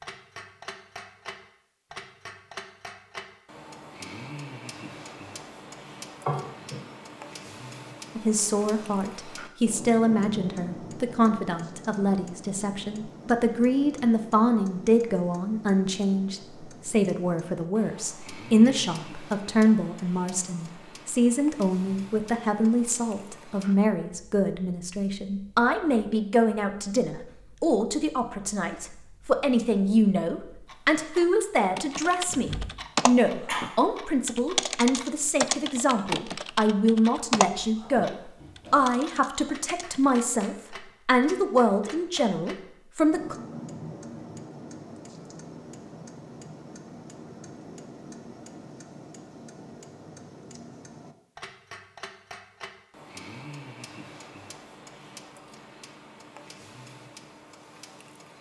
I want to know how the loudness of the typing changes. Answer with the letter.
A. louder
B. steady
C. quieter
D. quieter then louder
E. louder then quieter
C.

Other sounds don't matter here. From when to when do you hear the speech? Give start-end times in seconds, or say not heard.
8.2-43.4.